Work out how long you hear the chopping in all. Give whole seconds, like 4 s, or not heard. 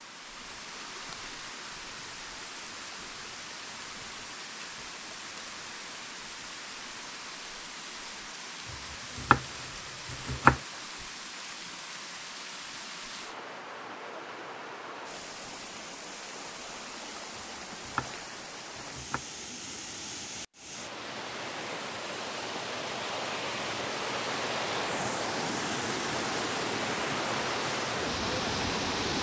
4 s.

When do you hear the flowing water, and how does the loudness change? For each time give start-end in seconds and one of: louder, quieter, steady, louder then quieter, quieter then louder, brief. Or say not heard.
0.0-29.1 louder.